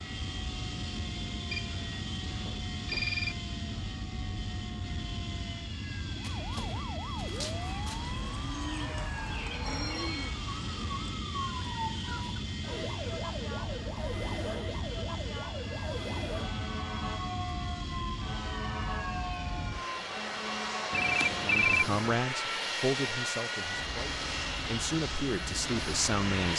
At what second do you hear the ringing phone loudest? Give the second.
22 s.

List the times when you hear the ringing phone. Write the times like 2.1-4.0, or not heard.
1.5-3.4, 9.5-10.4, 20.9-22.1.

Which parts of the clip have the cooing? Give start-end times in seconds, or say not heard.
7.3-12.4.